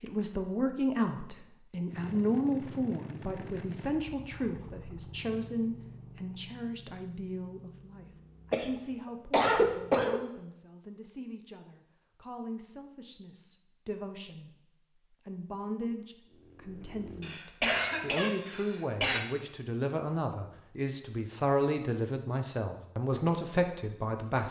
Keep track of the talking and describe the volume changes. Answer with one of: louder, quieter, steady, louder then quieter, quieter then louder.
quieter then louder.